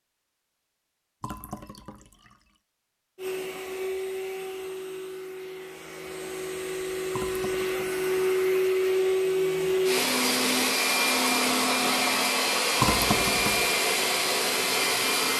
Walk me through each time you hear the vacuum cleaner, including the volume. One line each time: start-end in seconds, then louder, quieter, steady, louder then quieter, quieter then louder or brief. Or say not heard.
3.1-15.3 louder.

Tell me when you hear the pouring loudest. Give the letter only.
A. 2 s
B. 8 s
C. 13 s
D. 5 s
C.